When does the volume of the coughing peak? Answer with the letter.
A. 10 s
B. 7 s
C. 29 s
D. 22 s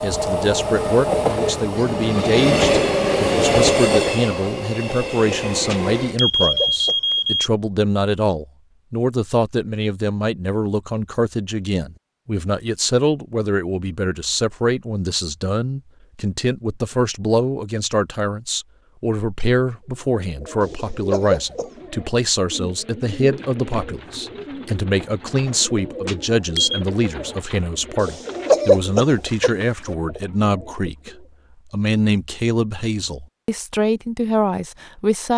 C.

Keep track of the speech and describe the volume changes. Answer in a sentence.
The volume of the speech stays about the same.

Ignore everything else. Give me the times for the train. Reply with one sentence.
The train can be heard from 0.0 to 6.2 s.